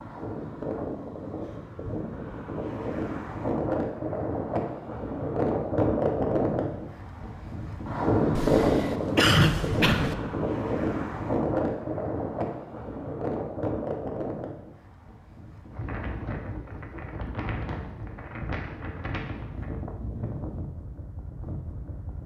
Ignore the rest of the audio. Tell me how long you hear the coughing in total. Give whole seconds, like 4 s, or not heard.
2 s.